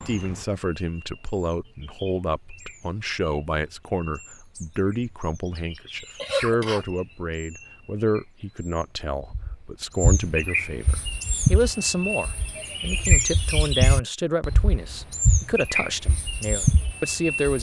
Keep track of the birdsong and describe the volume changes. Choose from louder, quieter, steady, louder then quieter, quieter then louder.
louder.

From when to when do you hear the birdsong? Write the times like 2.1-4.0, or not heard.
0.0-17.5.